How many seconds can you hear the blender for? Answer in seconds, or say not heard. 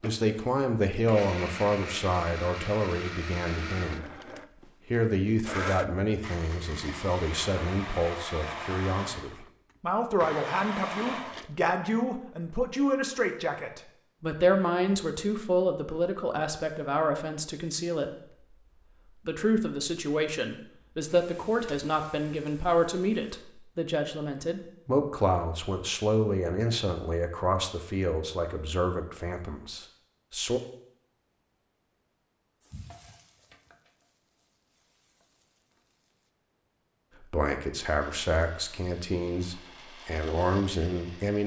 15 s.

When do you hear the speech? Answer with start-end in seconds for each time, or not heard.
0.0-4.2, 4.8-18.4, 19.2-30.6, 37.2-41.4.